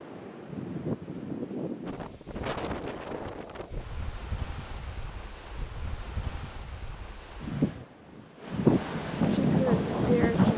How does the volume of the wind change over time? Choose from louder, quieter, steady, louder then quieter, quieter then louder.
quieter then louder.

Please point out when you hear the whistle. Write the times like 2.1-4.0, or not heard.
not heard.